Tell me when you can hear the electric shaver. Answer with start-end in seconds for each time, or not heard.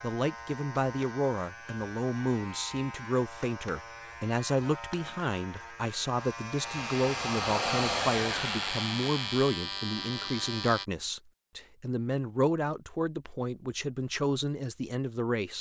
0.0-10.8.